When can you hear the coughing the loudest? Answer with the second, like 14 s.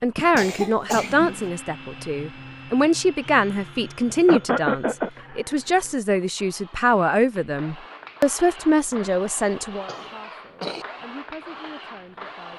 5 s.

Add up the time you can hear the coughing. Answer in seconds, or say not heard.
3 s.